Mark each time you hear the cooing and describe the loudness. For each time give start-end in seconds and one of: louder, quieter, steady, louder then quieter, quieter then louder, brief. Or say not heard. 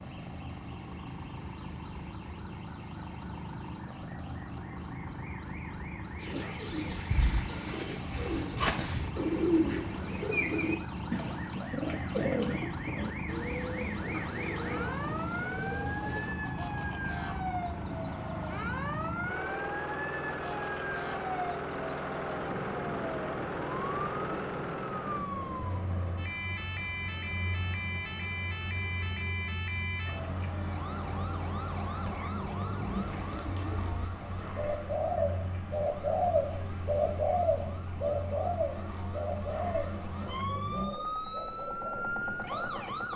6.2-16.4 louder then quieter
32.9-42.9 louder then quieter.